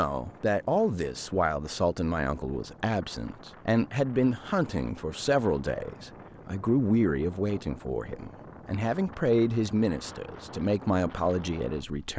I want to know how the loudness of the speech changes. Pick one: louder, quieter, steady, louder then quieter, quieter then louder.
steady.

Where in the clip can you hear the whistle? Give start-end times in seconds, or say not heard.
not heard.